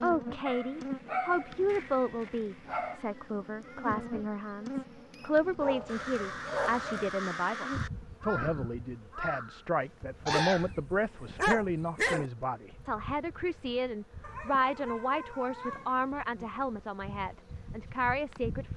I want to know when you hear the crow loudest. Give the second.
10 s.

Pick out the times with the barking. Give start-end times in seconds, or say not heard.
0.5-3.0, 5.6-7.1, 10.3-12.3, 14.2-16.2.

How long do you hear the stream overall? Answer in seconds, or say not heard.
not heard.